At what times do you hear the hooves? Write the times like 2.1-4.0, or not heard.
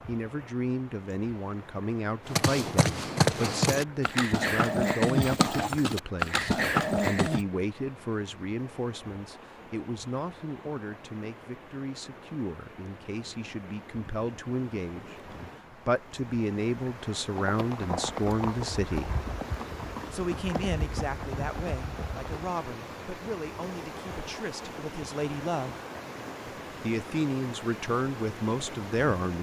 2.2-7.5, 17.5-22.3.